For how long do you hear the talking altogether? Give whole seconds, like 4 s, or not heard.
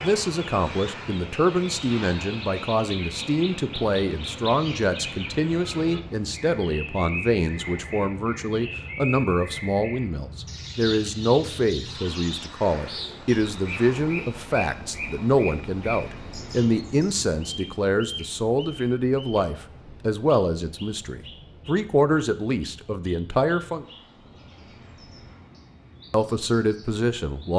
25 s.